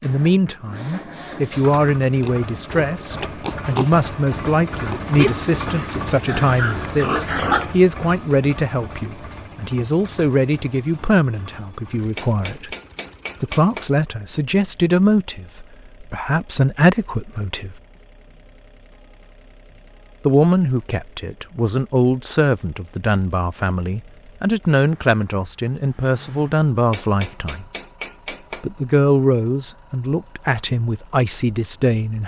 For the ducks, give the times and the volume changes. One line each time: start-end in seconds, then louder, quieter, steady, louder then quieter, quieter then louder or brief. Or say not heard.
not heard.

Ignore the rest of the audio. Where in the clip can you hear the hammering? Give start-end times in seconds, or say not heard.
12.0-13.9, 26.8-28.7.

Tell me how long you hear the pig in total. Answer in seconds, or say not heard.
6 s.